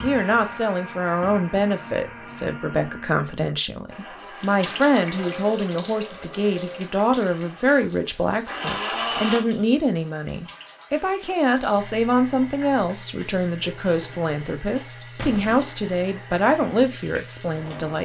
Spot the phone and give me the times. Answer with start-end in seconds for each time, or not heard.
not heard.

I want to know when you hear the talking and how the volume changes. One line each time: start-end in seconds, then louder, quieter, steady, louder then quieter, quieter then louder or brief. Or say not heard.
0.0-18.0 steady.